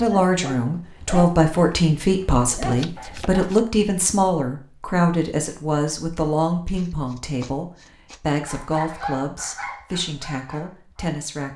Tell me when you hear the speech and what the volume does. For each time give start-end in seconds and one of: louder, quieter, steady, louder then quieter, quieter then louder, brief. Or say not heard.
0.0-11.5 quieter.